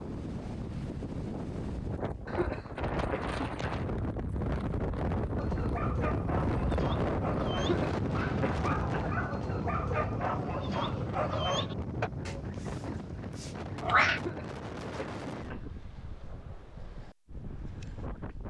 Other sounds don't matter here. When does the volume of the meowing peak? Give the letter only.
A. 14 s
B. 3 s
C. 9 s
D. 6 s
A.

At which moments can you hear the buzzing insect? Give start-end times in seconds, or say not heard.
not heard.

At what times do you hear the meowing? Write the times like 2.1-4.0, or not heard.
12.2-14.2.